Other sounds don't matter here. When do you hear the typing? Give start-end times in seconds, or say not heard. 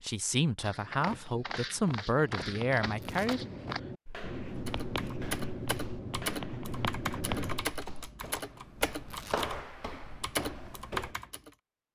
4.7-11.5.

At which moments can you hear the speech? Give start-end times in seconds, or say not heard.
0.0-3.5.